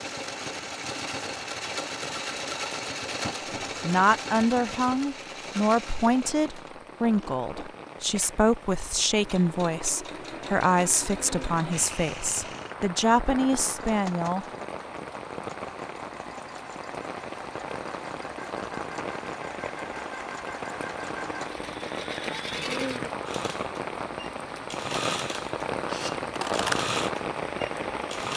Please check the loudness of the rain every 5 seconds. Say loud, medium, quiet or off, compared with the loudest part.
quiet, quiet, medium, medium, loud, loud.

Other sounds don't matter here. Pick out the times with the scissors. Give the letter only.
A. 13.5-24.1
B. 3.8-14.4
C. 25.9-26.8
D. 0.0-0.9
C.